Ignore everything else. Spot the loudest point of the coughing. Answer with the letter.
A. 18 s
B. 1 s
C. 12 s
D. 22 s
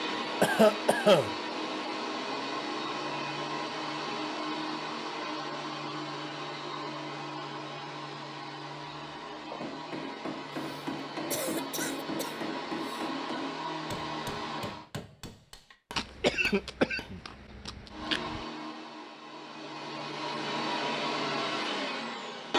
B.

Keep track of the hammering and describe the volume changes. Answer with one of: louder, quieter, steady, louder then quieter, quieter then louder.
quieter.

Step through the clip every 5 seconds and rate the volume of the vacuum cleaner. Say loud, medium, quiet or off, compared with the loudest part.
loud, medium, medium, medium, loud.